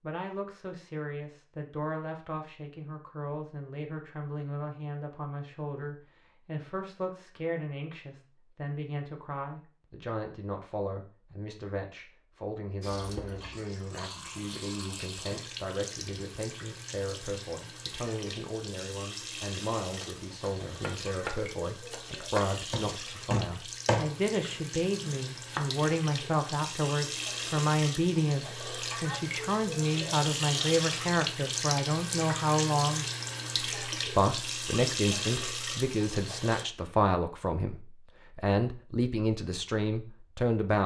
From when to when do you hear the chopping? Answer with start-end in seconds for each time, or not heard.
19.9-25.6.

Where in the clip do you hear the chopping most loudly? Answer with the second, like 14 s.
24 s.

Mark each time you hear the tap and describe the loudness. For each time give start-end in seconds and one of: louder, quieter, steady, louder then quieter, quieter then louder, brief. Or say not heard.
12.8-36.6 louder.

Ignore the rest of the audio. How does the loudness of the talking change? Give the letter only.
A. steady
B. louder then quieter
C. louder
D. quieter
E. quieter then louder
C.